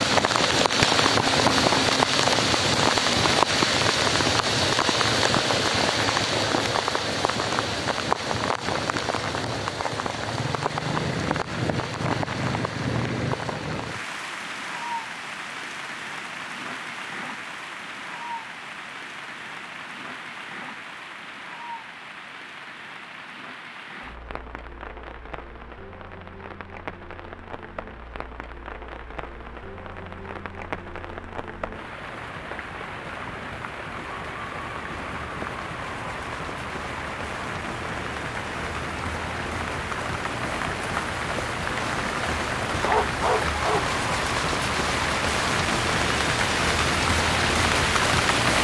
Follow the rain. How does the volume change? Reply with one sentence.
The volume of the rain goes down, then up.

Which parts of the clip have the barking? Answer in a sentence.
The barking can be heard from 42.9 to 44.0 s.